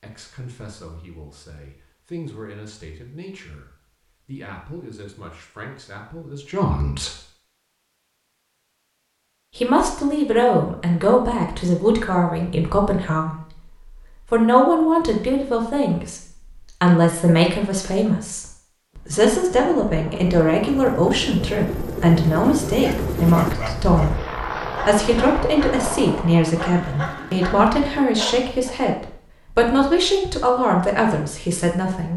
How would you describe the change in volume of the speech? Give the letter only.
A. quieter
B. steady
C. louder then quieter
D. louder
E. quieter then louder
D.